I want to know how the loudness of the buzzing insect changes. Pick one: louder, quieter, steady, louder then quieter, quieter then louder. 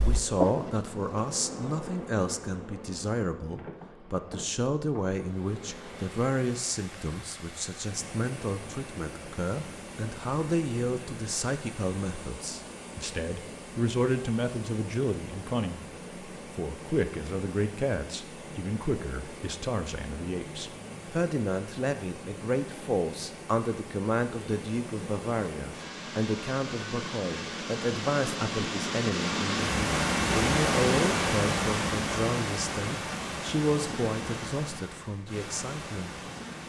quieter.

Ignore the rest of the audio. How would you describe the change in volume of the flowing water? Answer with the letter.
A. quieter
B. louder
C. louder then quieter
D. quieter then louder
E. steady
B.